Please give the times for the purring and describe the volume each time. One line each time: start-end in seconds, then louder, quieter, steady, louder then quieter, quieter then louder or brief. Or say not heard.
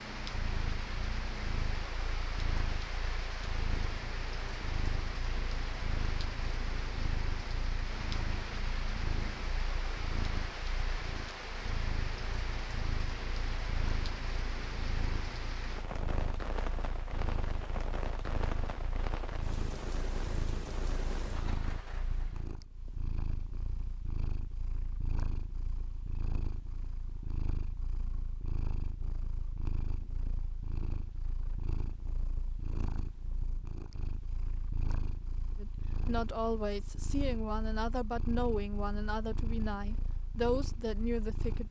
0.2-41.6 steady.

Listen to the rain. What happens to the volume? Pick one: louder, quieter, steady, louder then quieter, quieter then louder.
steady.